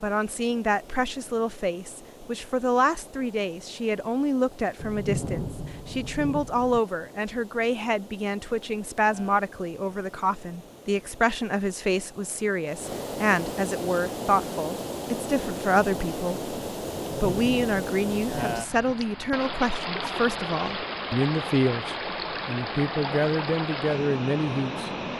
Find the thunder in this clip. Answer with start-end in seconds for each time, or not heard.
4.8-6.8, 17.0-18.9.